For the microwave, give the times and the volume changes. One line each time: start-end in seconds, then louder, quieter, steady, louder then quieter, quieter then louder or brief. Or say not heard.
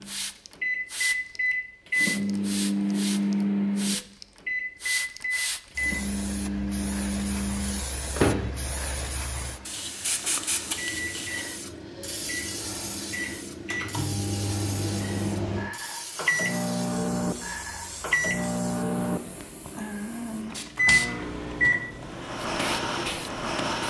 0.0-23.8 quieter then louder.